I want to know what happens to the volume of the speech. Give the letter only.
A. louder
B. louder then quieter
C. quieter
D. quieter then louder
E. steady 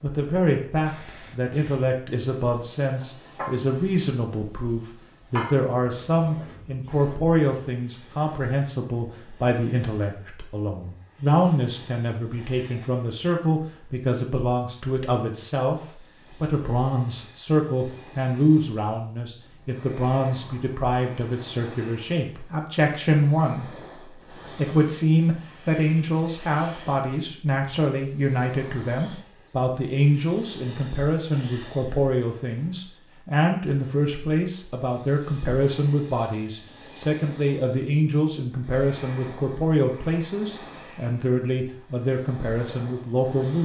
E.